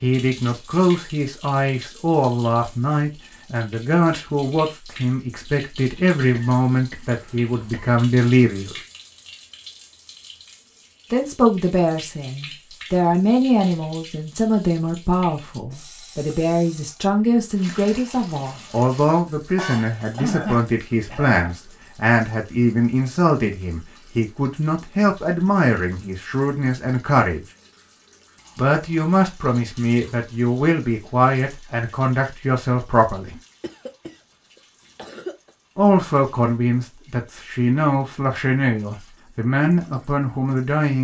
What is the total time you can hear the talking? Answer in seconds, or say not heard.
35 s.